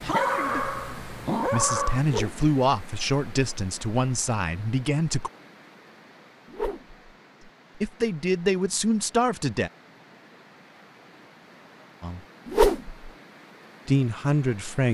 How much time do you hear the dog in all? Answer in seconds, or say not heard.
2 s.